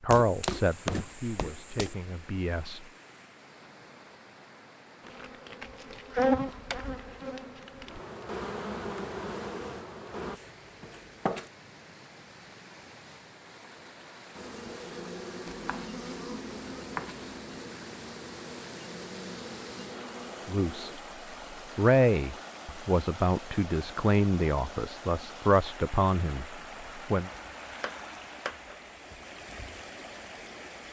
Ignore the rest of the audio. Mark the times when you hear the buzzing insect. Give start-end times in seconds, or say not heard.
5.0-10.4, 14.3-20.9.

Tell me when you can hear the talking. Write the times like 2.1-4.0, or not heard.
0.0-2.8, 20.4-20.9, 21.8-27.3.